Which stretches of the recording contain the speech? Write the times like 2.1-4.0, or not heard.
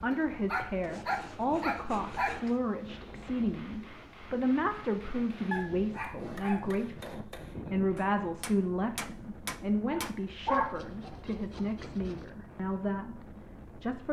0.0-14.0.